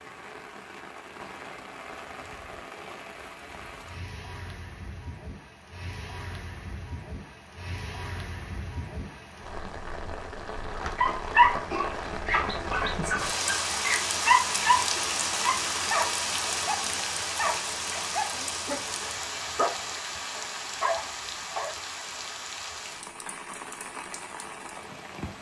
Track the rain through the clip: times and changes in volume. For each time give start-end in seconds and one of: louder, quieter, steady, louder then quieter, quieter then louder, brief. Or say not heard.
0.0-25.3 louder then quieter.